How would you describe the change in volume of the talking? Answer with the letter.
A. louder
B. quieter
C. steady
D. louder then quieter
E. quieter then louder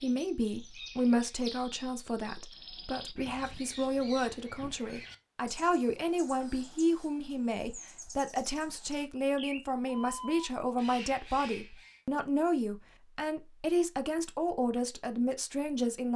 C.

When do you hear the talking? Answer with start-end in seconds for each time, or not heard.
0.0-16.1.